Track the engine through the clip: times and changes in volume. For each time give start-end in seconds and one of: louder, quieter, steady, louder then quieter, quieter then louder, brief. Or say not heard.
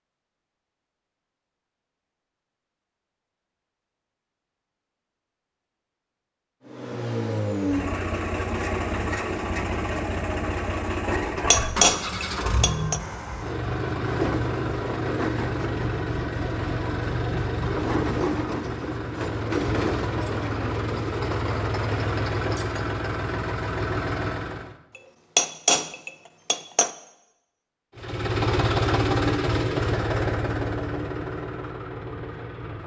6.7-24.8 steady
27.9-32.8 quieter.